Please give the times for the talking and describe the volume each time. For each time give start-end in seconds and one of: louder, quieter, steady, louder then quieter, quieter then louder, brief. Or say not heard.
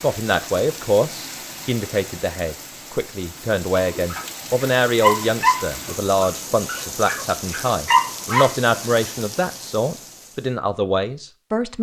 0.0-11.7 steady.